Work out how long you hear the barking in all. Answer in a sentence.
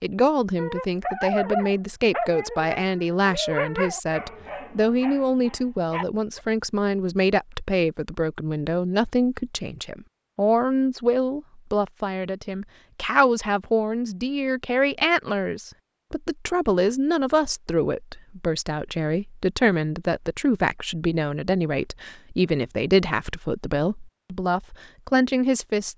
You can hear the barking for 6 seconds altogether.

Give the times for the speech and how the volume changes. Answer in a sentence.
You can hear the speech from 0.0 to 25.9 s, at a steady volume.